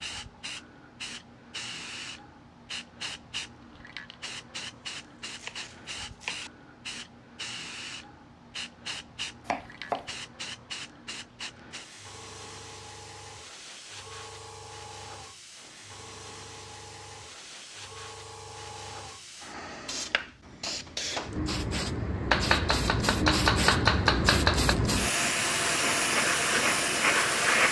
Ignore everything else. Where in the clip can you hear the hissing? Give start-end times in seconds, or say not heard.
0.0-27.6.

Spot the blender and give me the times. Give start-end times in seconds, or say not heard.
not heard.